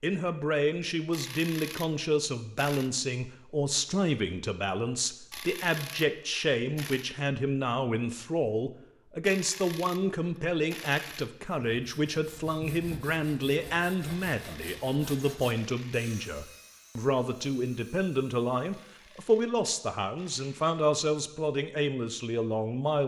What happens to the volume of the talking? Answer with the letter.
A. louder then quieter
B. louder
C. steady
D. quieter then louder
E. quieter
C.